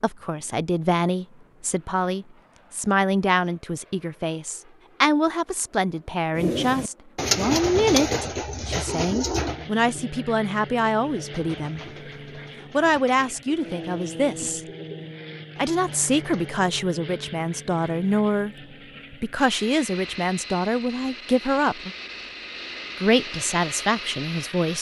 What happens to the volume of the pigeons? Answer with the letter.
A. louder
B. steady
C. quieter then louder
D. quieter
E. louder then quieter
D.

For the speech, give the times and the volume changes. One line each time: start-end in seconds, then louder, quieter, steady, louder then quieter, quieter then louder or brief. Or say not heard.
0.0-11.8 steady
12.7-14.6 brief
15.6-21.9 steady
23.0-24.7 brief.